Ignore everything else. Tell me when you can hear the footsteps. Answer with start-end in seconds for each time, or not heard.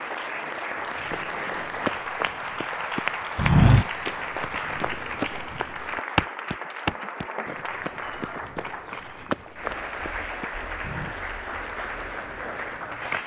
0.9-11.2.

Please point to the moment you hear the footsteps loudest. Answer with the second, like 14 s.
4 s.